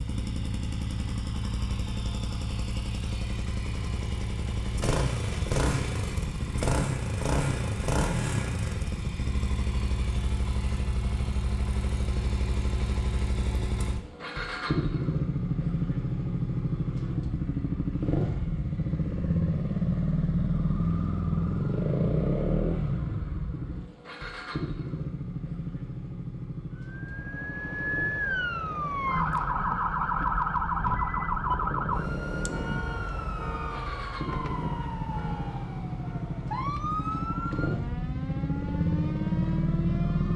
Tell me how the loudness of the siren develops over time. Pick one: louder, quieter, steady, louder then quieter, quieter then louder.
quieter.